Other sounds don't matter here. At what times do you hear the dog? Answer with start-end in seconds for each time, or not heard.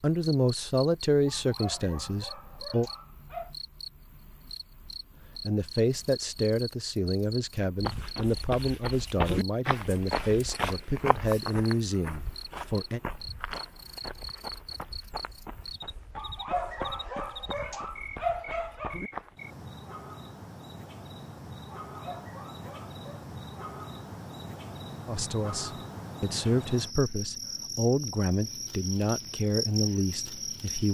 1.2-3.5, 16.1-19.0, 21.9-23.2.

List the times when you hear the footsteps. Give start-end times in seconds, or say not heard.
7.8-19.4.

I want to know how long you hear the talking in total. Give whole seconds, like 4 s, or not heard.
16 s.